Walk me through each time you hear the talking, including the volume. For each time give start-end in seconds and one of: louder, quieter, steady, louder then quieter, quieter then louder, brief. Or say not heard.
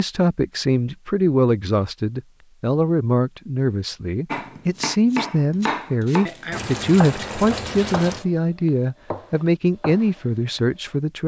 0.0-11.2 steady.